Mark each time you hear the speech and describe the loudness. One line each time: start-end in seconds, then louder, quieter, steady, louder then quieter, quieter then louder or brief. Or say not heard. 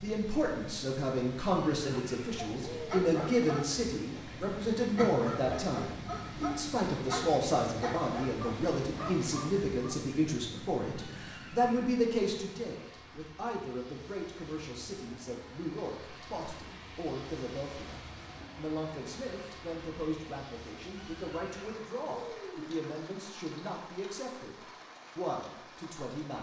0.0-26.3 quieter.